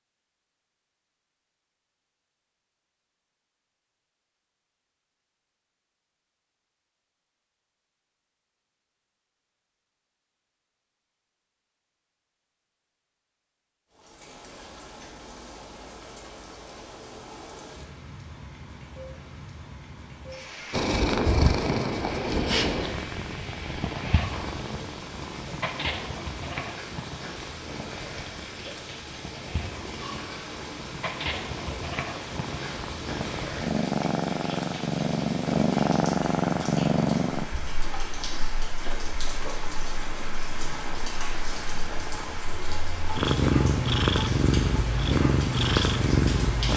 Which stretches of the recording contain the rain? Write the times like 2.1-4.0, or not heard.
13.9-46.7.